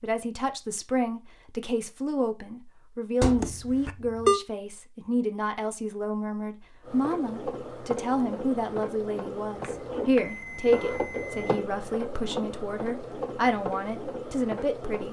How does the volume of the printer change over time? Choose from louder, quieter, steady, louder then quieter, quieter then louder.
steady.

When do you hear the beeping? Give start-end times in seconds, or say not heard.
3.2-4.4, 9.6-11.7.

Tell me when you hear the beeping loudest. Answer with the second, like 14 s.
4 s.